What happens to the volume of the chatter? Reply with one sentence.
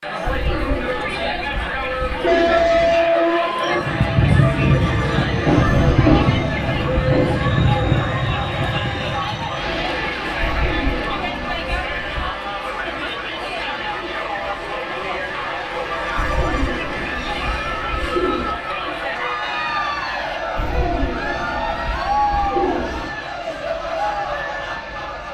The volume of the chatter stays about the same.